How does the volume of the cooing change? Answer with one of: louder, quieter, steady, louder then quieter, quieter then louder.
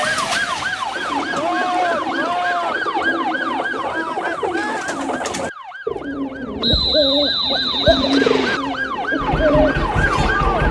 louder.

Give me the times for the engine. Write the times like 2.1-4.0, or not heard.
9.2-10.6.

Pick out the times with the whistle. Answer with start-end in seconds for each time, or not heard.
6.6-8.6.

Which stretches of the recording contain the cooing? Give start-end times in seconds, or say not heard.
0.8-10.1.